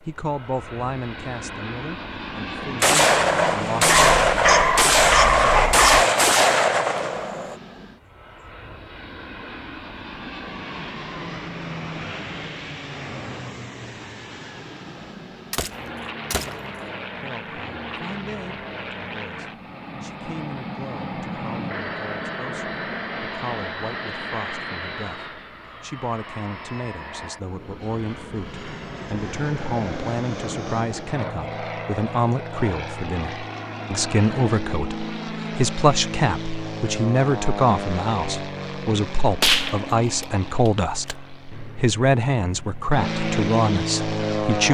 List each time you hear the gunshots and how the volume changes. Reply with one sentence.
You can hear the gunshots from 2.8 to 7.5 s, at a steady volume; briefly from 15.5 to 16.6 s; and briefly from 39.4 to 41.1 s.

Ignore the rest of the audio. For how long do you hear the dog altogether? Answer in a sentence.
The dog can be heard for 2 seconds in total.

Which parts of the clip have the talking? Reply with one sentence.
The talking can be heard from 0.1 to 4.0 s and from 17.2 to 44.7 s.